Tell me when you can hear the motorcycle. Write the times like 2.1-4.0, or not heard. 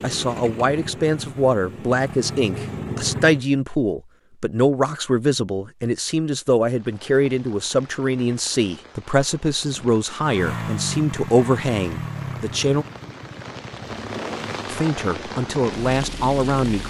0.0-3.5, 10.2-16.8.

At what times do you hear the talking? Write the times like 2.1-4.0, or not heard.
0.0-12.8, 14.7-16.8.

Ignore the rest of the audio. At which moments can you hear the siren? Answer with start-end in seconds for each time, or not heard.
not heard.